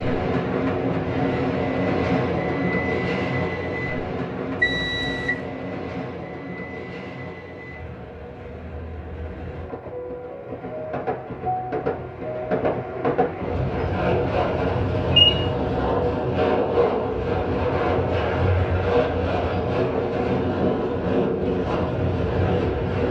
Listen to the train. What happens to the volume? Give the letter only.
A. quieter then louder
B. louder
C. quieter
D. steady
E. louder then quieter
A.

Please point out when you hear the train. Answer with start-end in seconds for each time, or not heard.
0.0-23.0.